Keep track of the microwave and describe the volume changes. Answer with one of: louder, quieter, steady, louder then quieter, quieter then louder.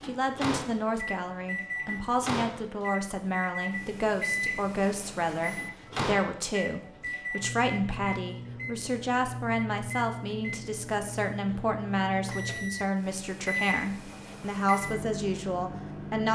steady.